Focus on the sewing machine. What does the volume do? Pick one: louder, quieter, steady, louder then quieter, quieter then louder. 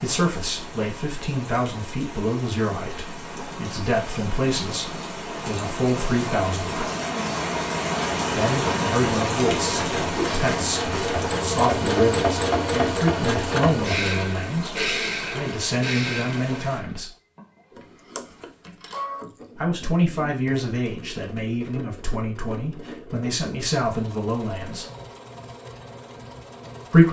quieter.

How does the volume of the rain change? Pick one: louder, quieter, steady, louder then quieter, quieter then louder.
louder then quieter.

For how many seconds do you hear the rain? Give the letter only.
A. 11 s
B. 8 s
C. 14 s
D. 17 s
D.